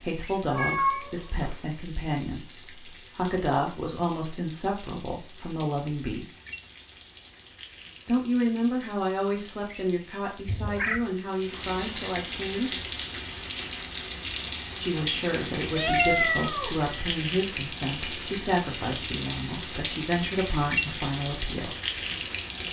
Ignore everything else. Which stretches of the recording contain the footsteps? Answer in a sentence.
The footsteps can't be heard in this clip.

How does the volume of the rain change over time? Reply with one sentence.
The loudness of the rain goes up.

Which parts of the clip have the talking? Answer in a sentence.
The talking can be heard from 0.0 to 6.3 s, from 8.1 to 12.7 s and from 14.8 to 21.8 s.